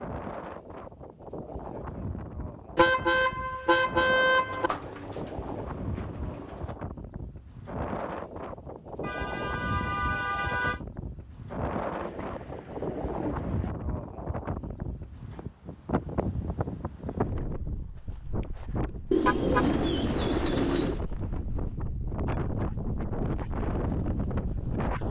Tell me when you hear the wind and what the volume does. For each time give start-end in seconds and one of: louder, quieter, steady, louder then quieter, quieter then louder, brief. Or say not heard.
0.0-25.0 louder.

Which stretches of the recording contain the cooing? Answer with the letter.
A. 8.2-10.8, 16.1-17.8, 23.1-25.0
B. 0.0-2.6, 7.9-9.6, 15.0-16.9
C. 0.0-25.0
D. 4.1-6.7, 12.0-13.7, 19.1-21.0
D.